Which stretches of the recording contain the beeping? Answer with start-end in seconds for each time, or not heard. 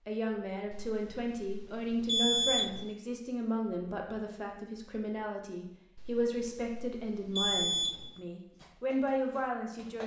0.7-2.9, 6.0-8.1.